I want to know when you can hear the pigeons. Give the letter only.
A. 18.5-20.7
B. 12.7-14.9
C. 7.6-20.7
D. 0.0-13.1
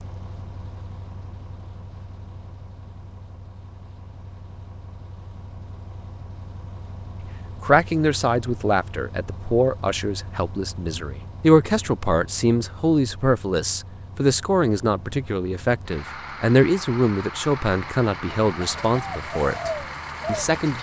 A.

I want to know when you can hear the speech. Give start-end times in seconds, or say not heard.
7.6-20.7.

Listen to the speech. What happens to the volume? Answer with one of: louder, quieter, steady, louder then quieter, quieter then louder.
steady.